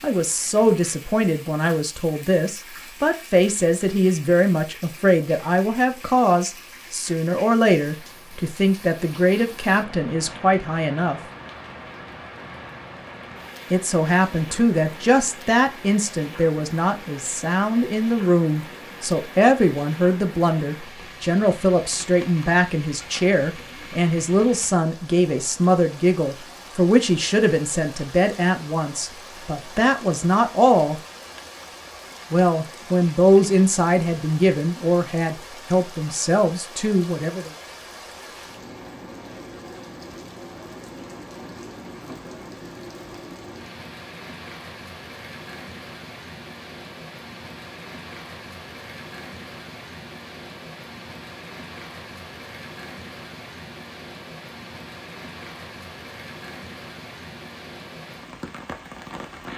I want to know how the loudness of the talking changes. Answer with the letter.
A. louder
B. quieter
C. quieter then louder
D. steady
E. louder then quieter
D.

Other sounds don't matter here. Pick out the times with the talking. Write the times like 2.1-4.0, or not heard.
0.0-11.2, 13.7-31.0, 32.3-37.5.